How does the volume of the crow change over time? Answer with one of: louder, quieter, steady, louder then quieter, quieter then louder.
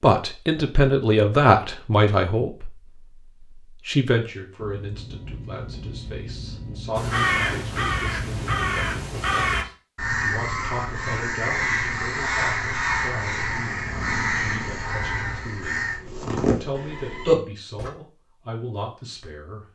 steady.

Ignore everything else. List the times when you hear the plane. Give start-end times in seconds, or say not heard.
4.5-9.2.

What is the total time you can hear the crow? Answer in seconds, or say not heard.
11 s.